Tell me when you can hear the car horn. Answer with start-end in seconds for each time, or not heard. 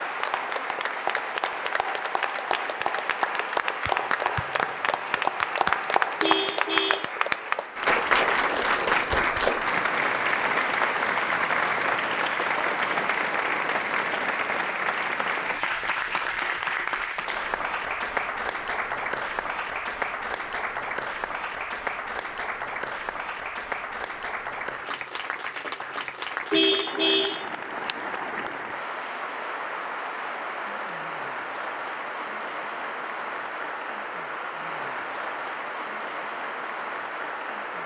6.2-7.1, 26.5-27.9.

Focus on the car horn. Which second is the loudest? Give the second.
27 s.